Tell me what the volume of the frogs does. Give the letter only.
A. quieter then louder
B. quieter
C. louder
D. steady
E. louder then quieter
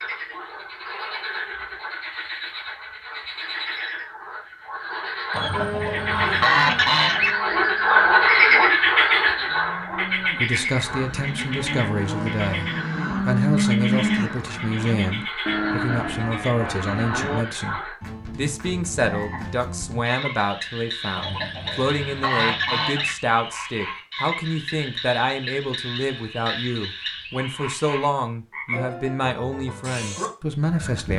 E.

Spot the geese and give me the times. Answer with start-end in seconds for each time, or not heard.
5.3-7.3, 21.1-23.1.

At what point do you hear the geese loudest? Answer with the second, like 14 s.
7 s.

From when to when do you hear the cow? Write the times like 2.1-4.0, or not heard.
5.5-17.4.